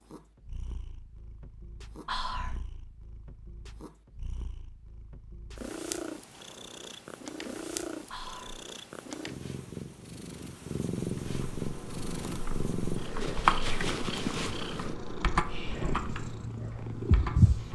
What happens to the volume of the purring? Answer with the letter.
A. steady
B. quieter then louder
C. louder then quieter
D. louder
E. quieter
D.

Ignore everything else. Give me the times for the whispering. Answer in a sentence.
You can hear the whispering from 2.0 to 2.6 s, from 8.1 to 8.6 s and from 15.4 to 15.9 s.